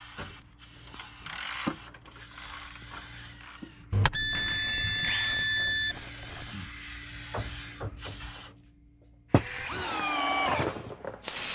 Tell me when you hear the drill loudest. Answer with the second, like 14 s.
10 s.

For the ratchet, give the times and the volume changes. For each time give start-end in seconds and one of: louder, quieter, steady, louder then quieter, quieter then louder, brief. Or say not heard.
0.1-6.6 quieter.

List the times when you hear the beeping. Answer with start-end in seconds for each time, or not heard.
3.9-6.0.